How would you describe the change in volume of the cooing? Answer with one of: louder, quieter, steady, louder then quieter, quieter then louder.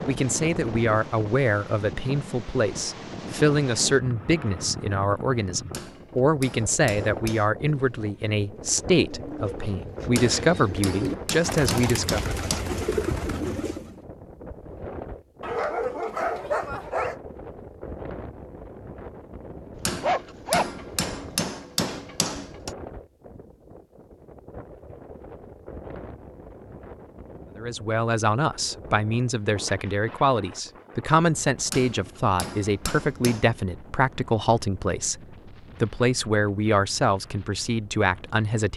louder.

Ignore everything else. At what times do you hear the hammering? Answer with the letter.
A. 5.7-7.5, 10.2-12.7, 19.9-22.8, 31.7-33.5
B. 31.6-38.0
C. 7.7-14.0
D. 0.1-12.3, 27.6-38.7
A.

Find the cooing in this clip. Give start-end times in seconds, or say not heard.
7.7-14.0.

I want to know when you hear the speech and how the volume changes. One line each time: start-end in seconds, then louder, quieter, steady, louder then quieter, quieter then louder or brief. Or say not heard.
0.1-12.3 steady
27.6-38.7 steady.